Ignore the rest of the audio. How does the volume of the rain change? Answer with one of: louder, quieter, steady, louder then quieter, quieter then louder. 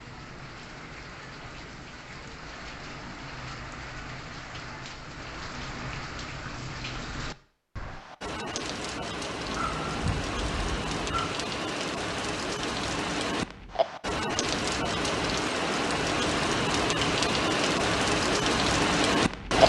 louder.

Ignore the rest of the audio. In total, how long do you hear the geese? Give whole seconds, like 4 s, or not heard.
2 s.